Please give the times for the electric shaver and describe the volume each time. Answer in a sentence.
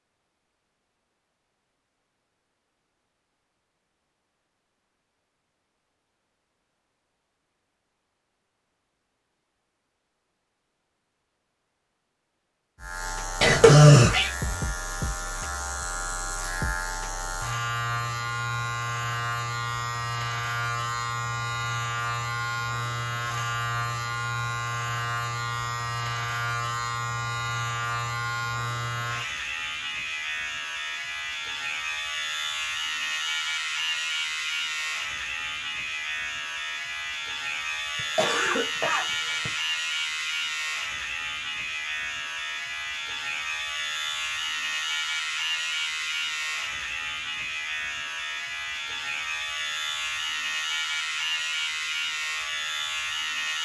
You can hear the electric shaver from 12.8 to 53.6 s, at a steady volume.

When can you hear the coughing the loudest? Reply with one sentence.
The loudest moment of the coughing is at 14 seconds.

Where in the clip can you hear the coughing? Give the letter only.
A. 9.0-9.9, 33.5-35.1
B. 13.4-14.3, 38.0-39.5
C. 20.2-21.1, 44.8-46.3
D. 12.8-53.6
B.